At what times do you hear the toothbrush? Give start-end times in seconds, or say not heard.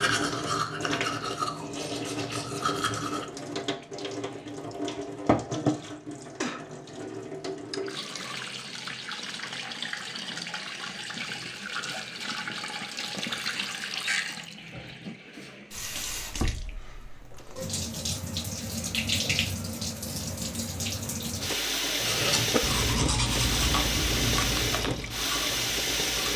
0.0-3.2, 22.0-26.3.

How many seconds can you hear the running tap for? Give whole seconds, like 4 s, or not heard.
26 s.